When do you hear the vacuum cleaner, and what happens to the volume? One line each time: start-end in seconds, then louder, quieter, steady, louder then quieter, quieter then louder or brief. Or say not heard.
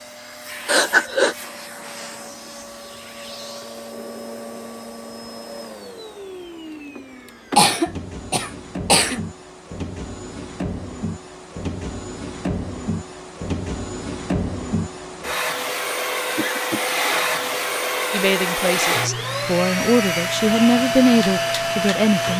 0.0-22.3 louder.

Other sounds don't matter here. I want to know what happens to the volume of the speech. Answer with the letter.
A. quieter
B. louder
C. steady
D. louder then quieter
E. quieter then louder
D.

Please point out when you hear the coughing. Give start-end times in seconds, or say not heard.
0.7-1.4, 7.5-9.2, 16.4-16.9.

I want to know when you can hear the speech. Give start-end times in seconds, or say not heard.
18.1-22.3.